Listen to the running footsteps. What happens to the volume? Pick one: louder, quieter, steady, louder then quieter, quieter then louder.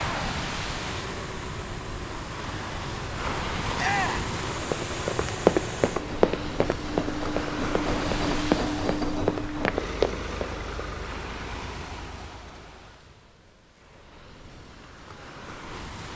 quieter then louder.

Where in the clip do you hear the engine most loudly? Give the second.
9 s.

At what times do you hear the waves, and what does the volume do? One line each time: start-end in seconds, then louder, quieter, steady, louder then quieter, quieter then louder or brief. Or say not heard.
0.0-16.1 quieter.